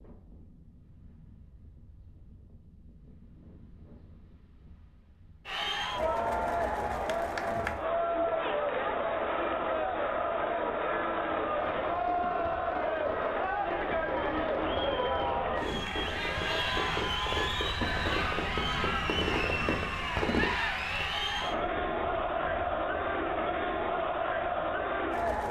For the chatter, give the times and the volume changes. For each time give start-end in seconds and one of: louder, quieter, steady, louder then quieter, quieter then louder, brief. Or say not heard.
5.5-25.4 steady.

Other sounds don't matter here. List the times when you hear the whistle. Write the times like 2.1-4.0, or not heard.
not heard.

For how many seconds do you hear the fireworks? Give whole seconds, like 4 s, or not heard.
9 s.